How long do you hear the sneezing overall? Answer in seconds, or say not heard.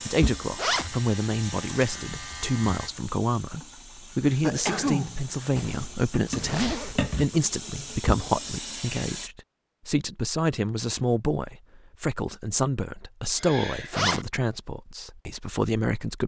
2 s.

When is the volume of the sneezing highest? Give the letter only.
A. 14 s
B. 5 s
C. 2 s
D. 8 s
B.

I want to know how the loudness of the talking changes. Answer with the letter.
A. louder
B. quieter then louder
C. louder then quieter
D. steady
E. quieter
D.